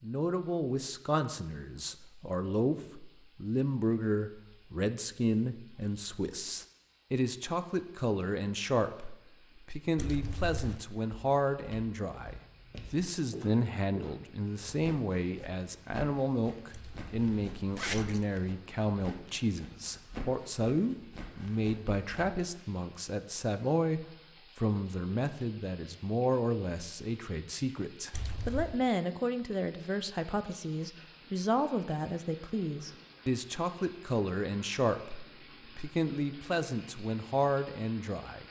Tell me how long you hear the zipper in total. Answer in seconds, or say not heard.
3 s.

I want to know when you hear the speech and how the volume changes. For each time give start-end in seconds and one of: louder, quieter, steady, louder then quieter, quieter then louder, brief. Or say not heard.
0.0-38.4 steady.